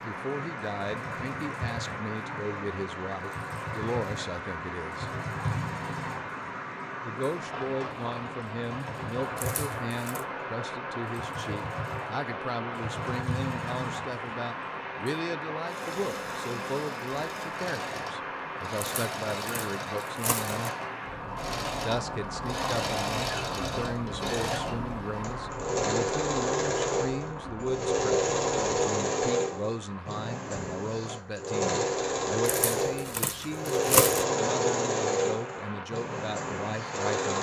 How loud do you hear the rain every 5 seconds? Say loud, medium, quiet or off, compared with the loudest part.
loud, loud, loud, loud, loud, loud, medium, loud.